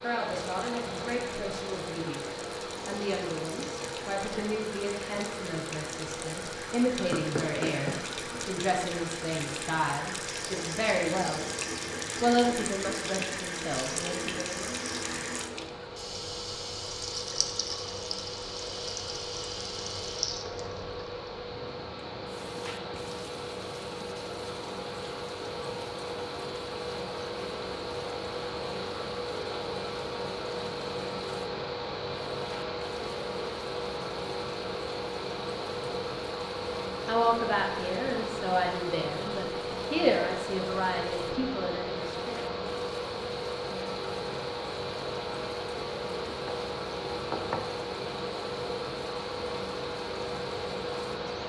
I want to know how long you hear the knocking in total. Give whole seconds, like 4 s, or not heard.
2 s.